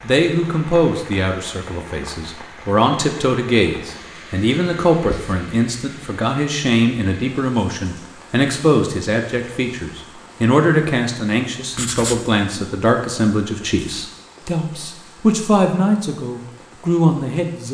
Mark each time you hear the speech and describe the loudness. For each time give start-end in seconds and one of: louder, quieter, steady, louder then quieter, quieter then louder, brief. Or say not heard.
0.0-17.7 steady.